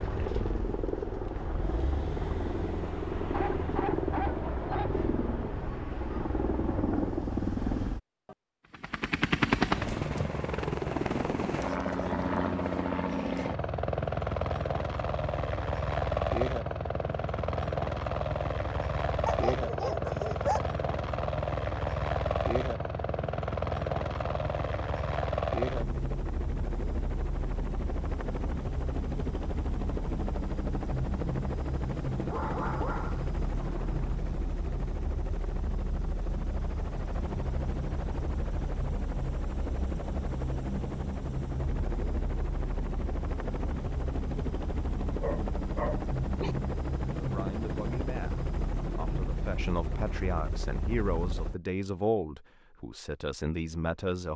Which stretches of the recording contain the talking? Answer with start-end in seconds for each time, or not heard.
47.1-54.3.